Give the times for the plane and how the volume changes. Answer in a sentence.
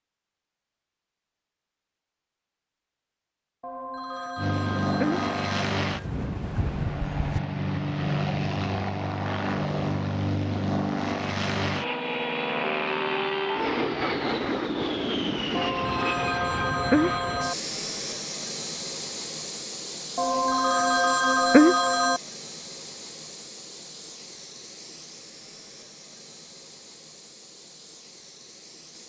You can hear the plane from 4.3 to 29.0 s, getting quieter.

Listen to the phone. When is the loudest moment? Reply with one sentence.
The volume of the phone peaks at 22 seconds.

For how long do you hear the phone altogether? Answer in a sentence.
The phone can be heard for 6 seconds in total.